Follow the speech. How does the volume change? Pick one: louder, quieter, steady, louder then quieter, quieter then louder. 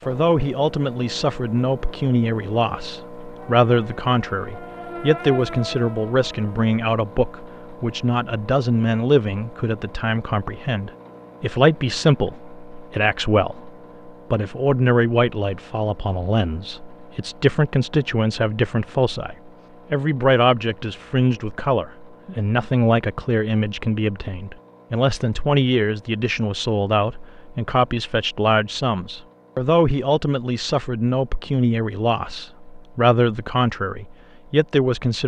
steady.